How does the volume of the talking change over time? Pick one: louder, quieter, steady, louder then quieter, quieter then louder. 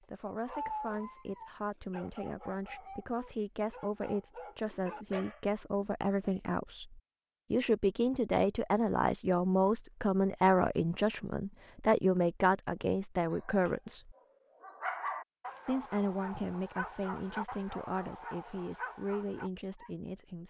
louder then quieter.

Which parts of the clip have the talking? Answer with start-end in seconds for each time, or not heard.
0.1-14.2, 15.7-20.4.